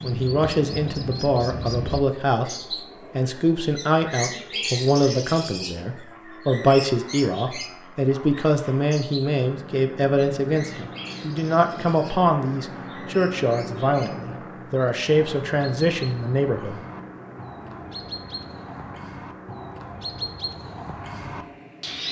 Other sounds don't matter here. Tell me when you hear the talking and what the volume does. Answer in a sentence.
You can hear the talking from 0.0 to 16.8 s, at a steady volume.